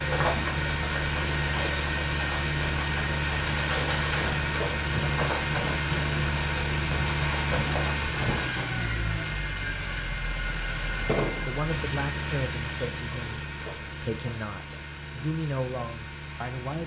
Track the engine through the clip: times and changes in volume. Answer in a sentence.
You can hear the engine from 0.0 to 16.8 s, getting quieter.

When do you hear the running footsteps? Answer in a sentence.
The running footsteps can be heard from 0.0 to 8.7 s.